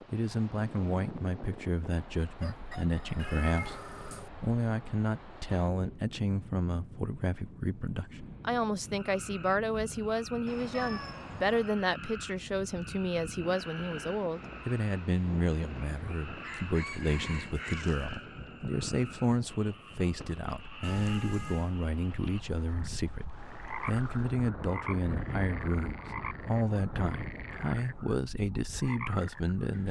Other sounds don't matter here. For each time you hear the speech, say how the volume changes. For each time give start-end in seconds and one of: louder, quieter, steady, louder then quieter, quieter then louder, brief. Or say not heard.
0.1-29.8 steady.